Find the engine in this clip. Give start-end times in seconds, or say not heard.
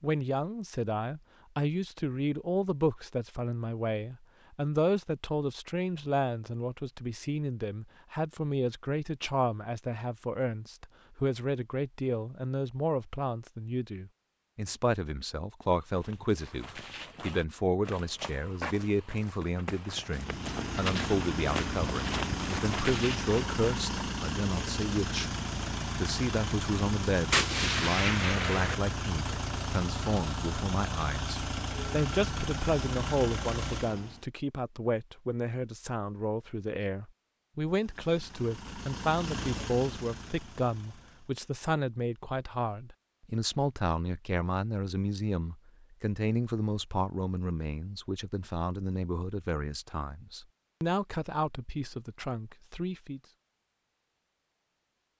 20.1-34.2, 37.6-41.4.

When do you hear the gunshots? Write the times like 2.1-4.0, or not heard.
27.3-28.8.